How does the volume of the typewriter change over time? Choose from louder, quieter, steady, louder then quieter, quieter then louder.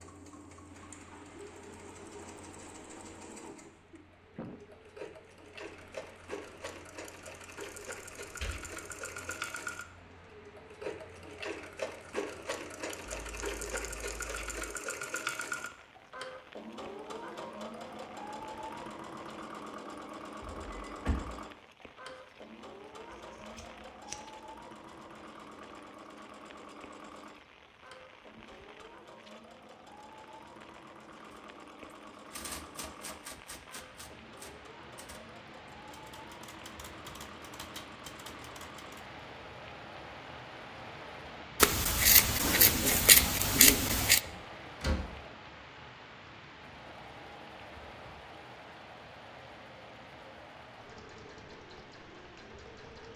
quieter then louder.